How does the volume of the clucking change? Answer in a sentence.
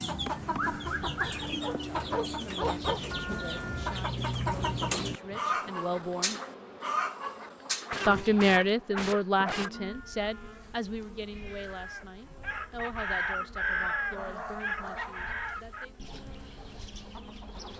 The volume of the clucking goes down.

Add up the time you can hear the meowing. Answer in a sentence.
You can hear the meowing for 3 seconds altogether.